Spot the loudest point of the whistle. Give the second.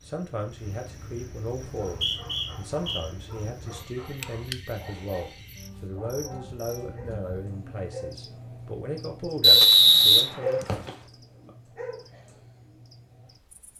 10 s.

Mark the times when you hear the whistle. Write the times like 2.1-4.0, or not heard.
1.9-3.0, 9.4-10.9.